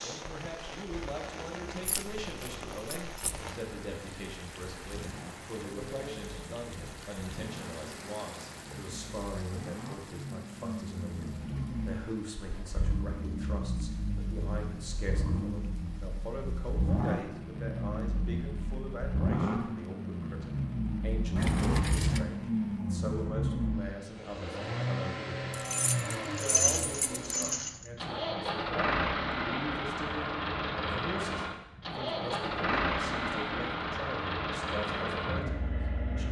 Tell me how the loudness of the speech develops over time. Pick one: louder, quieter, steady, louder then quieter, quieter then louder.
steady.